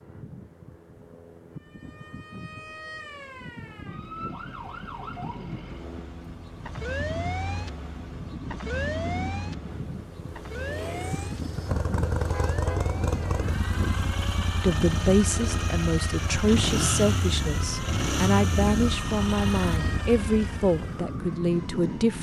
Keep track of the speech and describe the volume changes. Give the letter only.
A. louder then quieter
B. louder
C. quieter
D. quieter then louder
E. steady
E.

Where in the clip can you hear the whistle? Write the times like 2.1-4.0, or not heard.
not heard.